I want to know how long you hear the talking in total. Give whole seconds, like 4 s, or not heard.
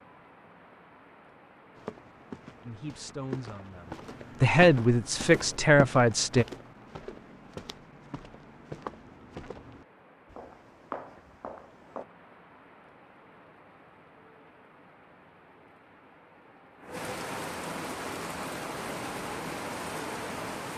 4 s.